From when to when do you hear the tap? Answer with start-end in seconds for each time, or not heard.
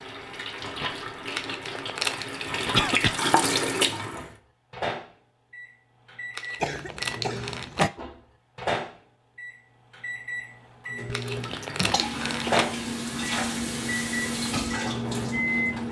0.0-4.3, 11.2-15.8.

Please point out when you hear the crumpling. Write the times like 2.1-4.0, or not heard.
1.3-2.2, 6.3-7.9, 11.1-12.7.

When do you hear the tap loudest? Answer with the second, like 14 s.
3 s.